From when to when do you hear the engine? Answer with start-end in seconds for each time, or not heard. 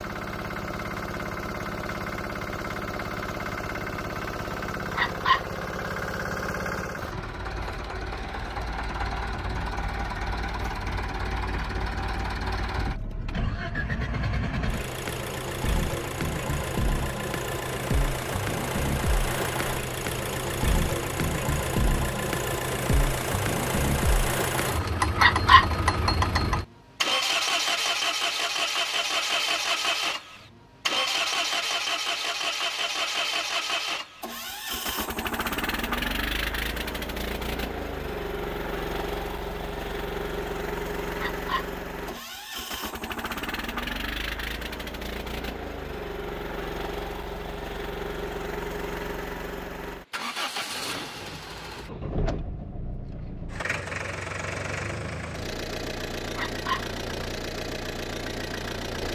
0.0-59.1.